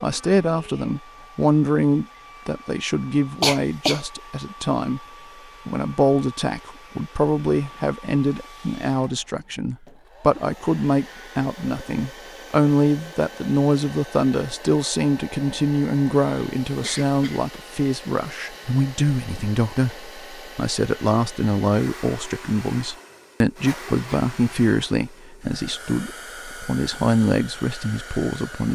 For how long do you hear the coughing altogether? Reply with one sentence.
The coughing can be heard for 2 seconds in total.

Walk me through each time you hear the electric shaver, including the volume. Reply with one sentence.
You can't hear the electric shaver here.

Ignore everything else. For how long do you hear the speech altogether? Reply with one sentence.
You can hear the speech for 28 seconds altogether.